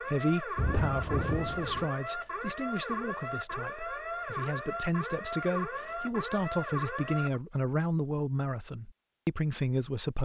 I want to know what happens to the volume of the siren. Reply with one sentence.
The volume of the siren stays about the same.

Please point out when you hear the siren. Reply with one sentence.
You can hear the siren from 0.0 to 7.4 s.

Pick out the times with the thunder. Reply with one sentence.
You can hear the thunder from 0.6 to 1.9 s.